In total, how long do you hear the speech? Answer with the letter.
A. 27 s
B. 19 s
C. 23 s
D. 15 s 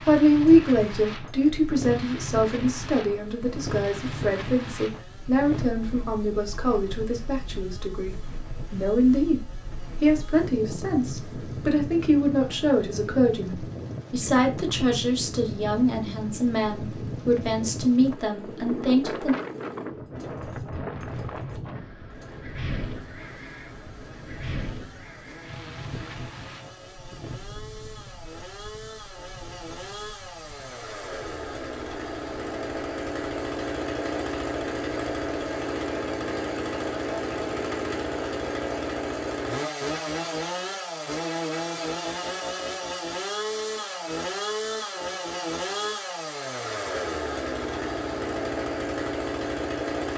B.